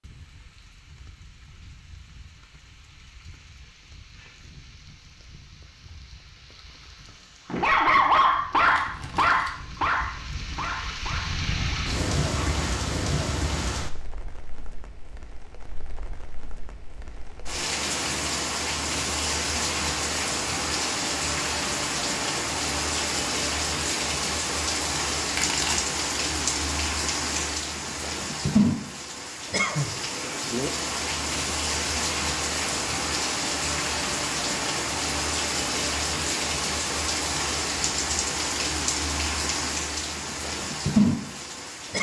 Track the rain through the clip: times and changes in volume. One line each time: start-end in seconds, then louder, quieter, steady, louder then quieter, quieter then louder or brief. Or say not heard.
0.0-41.9 louder.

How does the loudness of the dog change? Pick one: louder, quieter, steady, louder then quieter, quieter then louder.
quieter.